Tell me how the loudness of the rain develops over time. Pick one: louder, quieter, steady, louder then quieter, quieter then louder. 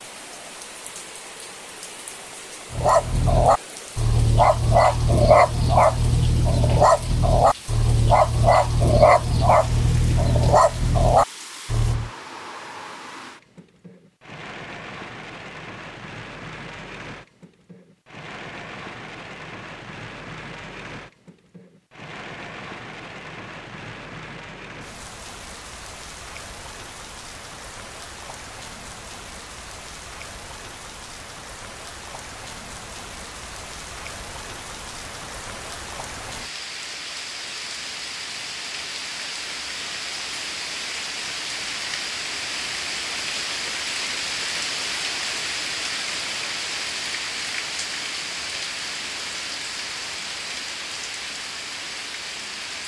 louder.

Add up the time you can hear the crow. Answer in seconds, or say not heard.
not heard.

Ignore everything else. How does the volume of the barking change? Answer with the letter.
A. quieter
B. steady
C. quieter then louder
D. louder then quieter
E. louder
B.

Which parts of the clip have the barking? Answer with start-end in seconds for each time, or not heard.
2.7-12.1.